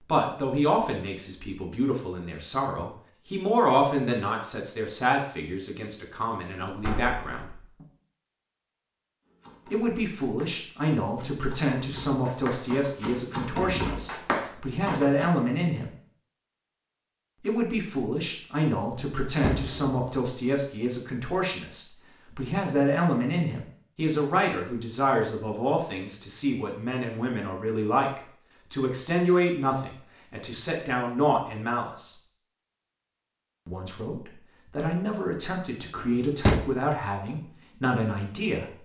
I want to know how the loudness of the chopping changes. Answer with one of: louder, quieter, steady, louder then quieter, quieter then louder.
louder.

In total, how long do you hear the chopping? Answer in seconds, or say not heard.
6 s.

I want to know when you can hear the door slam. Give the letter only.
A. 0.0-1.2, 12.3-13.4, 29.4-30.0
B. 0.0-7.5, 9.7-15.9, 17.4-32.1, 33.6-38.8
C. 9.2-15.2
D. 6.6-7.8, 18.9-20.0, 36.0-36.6
D.